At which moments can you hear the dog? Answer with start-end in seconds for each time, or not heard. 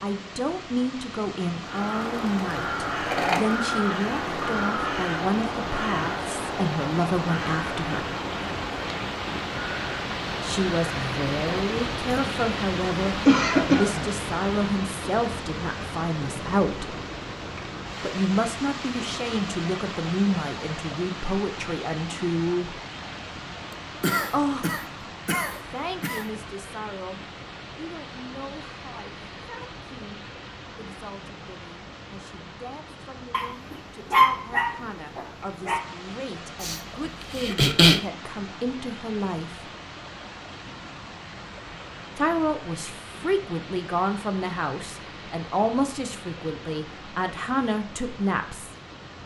33.3-35.8.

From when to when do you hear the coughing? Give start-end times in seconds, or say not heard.
13.2-14.1, 24.0-26.2, 36.6-38.0.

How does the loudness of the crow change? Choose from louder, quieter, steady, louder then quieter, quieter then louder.
quieter.